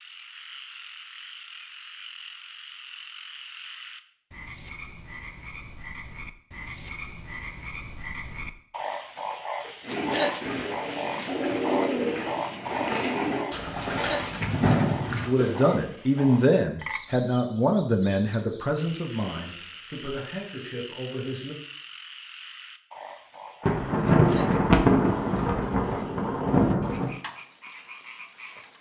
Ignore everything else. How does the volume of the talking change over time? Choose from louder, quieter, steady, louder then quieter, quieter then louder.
quieter.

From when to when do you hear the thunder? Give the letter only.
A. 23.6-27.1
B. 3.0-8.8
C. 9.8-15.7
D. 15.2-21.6
A.